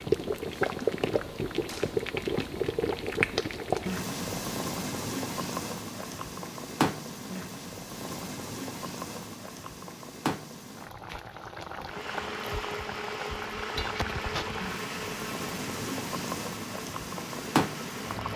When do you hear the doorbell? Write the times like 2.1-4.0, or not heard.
not heard.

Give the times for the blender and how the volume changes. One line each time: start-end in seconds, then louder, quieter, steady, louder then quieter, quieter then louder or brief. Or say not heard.
11.8-18.3 quieter.